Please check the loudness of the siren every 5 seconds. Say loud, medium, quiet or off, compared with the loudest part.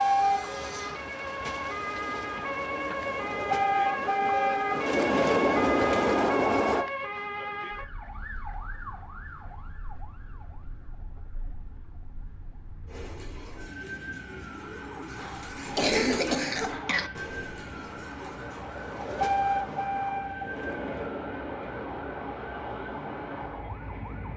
loud, loud, quiet, medium, medium.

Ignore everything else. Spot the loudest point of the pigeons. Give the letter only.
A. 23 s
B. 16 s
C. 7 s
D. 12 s
B.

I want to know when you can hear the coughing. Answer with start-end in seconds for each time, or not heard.
15.2-17.1.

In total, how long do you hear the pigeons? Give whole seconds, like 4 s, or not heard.
6 s.